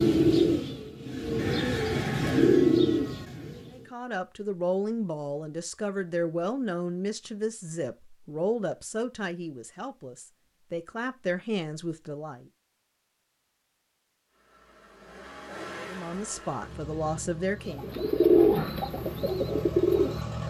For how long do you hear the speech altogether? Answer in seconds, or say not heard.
11 s.